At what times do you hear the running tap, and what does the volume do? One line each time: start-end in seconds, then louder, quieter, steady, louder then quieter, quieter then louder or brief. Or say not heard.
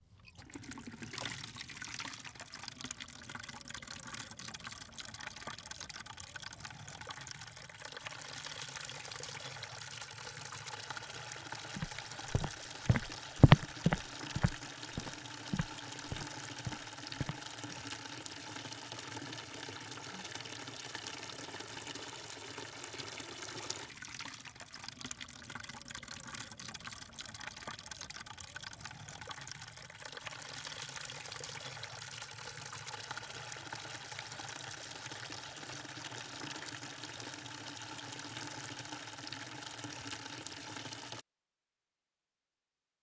0.0-41.2 steady.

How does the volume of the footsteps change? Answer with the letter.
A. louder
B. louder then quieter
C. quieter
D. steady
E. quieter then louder
B.